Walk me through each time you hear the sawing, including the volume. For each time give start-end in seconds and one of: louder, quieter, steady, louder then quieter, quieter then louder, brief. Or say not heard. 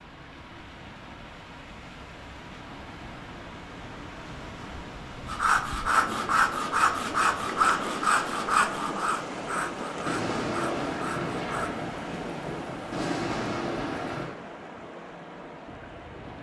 5.2-11.8 quieter.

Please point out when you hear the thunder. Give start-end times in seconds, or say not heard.
10.1-14.3.